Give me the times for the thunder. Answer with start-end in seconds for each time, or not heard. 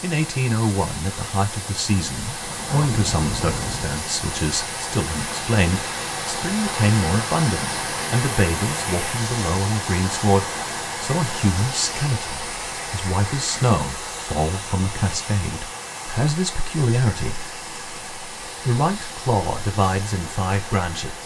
2.4-4.0.